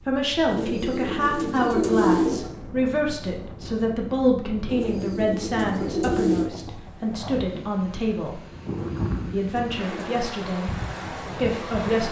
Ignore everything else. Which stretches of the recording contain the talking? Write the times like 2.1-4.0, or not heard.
0.0-8.4, 9.3-12.0.